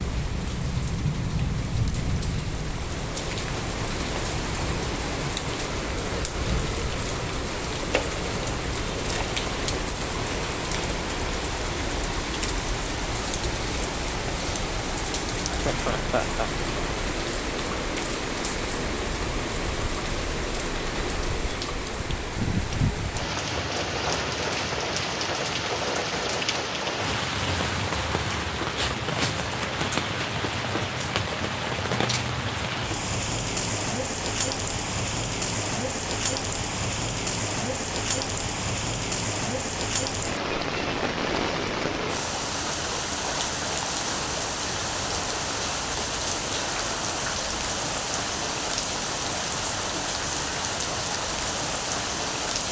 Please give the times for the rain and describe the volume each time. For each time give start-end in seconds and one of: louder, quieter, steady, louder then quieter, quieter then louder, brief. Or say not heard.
0.0-52.6 steady.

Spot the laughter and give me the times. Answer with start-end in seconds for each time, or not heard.
15.4-16.5.